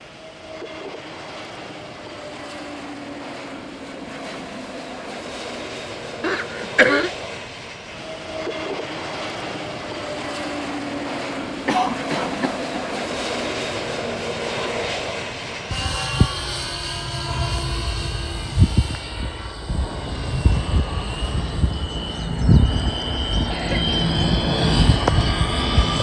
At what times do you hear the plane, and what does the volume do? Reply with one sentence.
The plane can be heard from 0.0 to 25.9 s, getting louder.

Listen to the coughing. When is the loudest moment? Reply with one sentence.
The loudest moment of the coughing is at 7 seconds.